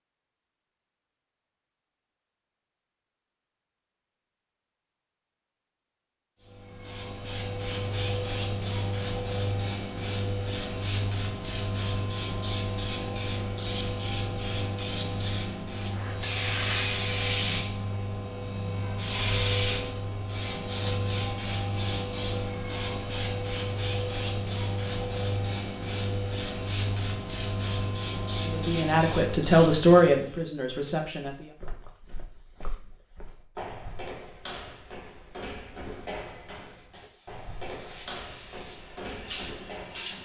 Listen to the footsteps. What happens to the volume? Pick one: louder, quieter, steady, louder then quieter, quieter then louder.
louder.